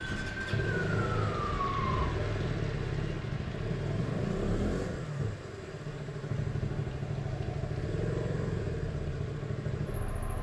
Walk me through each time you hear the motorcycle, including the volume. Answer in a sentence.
You can hear the motorcycle from 0.0 to 10.3 s, at a steady volume.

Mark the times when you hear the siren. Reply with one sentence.
You can hear the siren from 0.0 to 2.1 s.